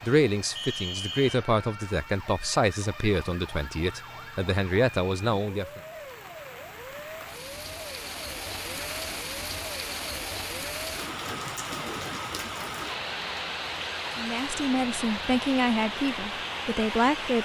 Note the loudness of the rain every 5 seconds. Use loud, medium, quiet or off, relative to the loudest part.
quiet, medium, loud, loud.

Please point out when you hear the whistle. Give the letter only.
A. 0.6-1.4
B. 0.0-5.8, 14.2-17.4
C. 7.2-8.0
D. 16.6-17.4
A.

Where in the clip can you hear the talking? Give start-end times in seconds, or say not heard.
0.0-5.8, 14.2-17.4.